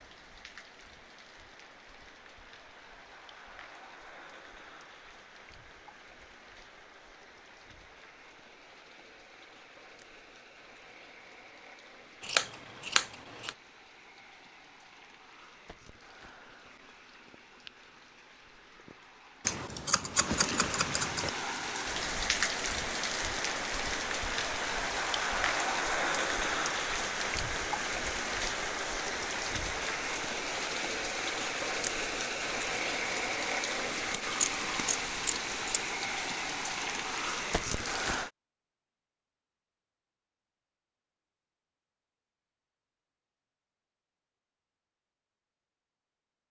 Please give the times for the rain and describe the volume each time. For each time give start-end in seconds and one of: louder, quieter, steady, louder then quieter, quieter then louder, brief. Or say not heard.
0.0-38.3 louder.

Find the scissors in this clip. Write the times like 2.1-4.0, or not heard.
12.2-13.5, 19.4-21.3, 34.4-35.9.